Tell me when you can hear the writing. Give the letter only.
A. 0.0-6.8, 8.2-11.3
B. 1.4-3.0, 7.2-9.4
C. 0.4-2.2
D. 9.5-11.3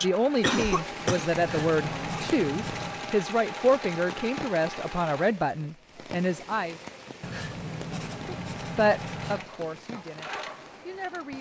B.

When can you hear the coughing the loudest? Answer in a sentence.
The loudest moment of the coughing is at 1 second.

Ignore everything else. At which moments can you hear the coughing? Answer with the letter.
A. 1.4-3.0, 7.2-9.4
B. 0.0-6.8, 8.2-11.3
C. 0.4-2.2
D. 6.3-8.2
C.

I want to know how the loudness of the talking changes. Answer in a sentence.
The loudness of the talking goes down.